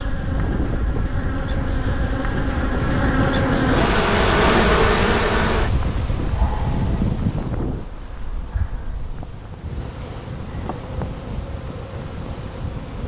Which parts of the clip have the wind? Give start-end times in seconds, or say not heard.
0.0-13.0.